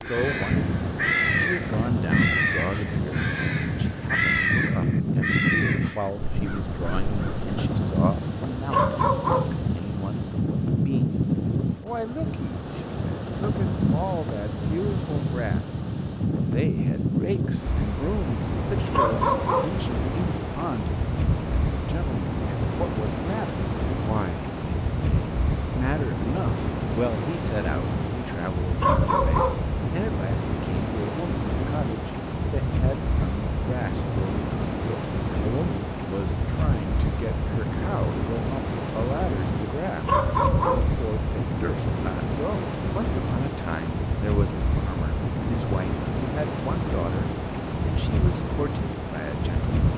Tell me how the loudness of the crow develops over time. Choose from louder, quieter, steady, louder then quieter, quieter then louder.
quieter.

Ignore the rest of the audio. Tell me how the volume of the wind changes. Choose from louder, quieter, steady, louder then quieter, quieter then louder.
steady.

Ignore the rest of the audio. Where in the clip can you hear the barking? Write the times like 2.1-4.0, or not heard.
8.7-9.6, 18.9-19.9, 28.8-29.7, 40.0-41.0.